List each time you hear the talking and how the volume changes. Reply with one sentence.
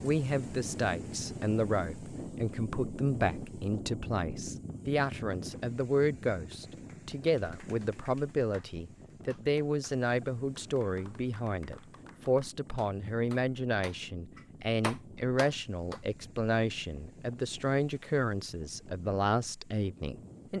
You can hear the talking from 0.0 to 20.5 s, at a steady volume.